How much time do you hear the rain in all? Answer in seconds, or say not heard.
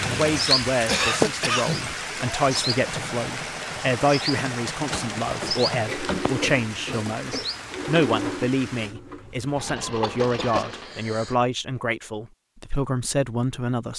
9 s.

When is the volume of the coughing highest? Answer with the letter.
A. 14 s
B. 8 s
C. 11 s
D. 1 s
D.